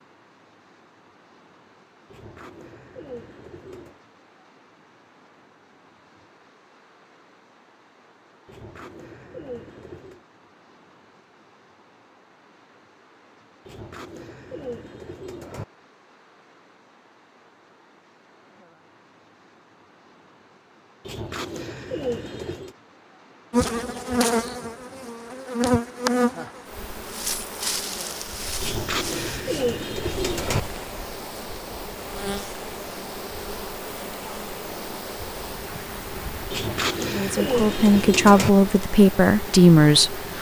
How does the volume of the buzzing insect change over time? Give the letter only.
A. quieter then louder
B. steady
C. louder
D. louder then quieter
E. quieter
E.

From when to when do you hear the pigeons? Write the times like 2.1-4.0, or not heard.
2.0-4.0, 8.4-10.2, 13.7-15.7, 21.0-22.8, 28.6-30.6, 36.5-38.5.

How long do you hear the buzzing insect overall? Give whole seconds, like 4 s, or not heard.
17 s.